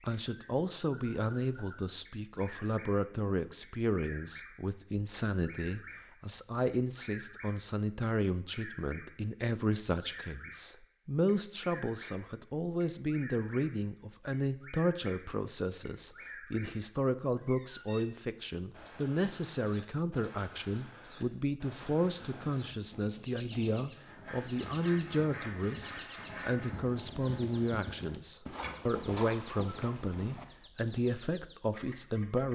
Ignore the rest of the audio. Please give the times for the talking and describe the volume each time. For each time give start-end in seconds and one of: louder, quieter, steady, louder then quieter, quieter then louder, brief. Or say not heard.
0.0-32.5 steady.